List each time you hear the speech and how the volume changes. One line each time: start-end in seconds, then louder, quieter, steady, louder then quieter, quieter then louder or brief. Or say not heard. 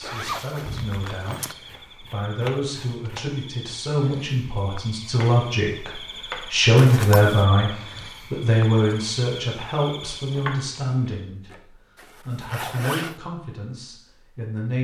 0.0-7.7 louder
8.3-14.7 quieter.